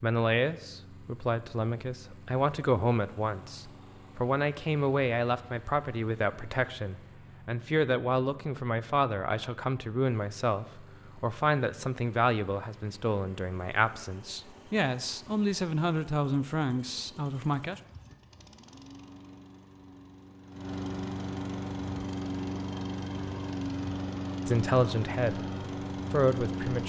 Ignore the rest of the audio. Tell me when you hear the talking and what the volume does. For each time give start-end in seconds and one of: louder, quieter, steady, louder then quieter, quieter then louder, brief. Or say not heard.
0.0-17.8 steady
24.4-26.8 brief.